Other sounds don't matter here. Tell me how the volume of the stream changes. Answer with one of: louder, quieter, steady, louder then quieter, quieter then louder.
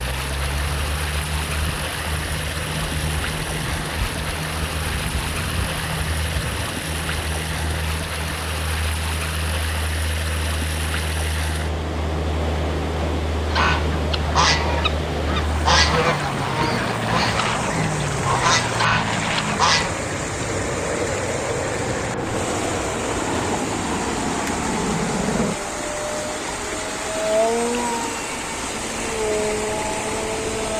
steady.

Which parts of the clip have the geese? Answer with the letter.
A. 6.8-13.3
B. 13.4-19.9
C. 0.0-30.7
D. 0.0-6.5
B.